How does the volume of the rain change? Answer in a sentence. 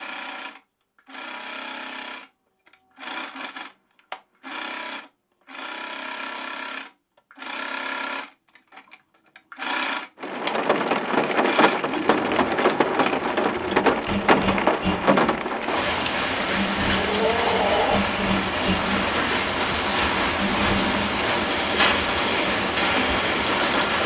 The loudness of the rain stays about the same.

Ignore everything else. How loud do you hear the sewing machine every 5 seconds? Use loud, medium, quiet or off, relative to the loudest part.
medium, loud, loud, loud, loud.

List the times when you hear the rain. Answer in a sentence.
You can hear the rain from 10.2 to 24.0 s.